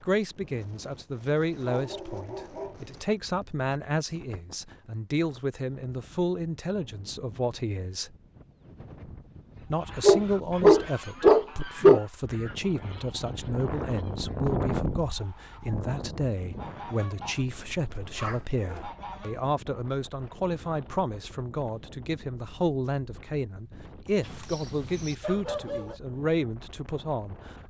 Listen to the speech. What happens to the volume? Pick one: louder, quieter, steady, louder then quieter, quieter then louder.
steady.